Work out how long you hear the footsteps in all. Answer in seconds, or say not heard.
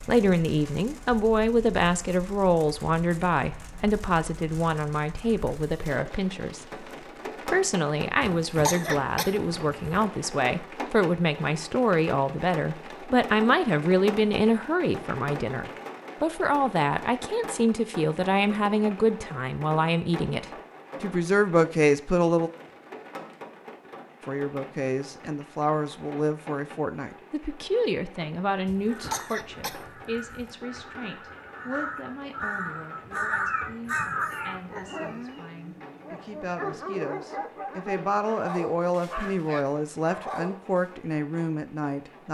not heard.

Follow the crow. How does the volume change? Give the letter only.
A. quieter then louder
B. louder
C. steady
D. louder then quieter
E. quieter
B.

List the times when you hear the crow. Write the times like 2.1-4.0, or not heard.
28.9-35.2.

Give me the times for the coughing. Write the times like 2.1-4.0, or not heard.
8.2-10.0, 28.6-30.5.